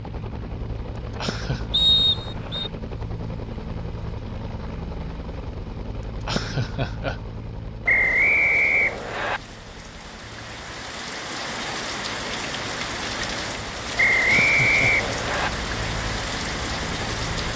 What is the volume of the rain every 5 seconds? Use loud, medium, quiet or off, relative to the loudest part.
off, quiet, loud, loud.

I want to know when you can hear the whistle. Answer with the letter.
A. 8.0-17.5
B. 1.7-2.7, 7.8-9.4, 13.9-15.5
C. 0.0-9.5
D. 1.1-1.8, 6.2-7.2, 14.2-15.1
B.